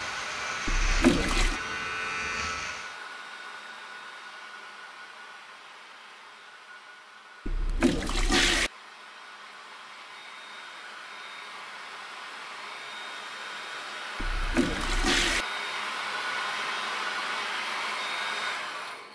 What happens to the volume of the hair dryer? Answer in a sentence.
The volume of the hair dryer goes down, then up.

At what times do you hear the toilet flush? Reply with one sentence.
You can hear the toilet flush from 0.7 to 1.6 s, from 7.5 to 8.7 s and from 14.2 to 15.4 s.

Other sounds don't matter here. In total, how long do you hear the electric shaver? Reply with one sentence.
The electric shaver can be heard for 3 seconds in total.